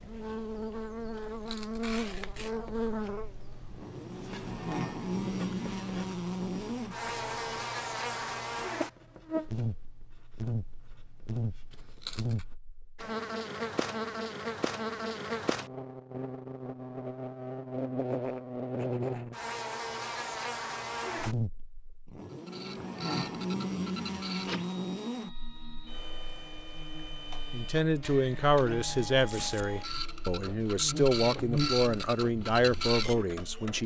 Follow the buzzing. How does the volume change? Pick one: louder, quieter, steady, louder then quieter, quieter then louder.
quieter.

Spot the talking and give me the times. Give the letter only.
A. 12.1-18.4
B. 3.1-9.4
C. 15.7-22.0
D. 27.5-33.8
D.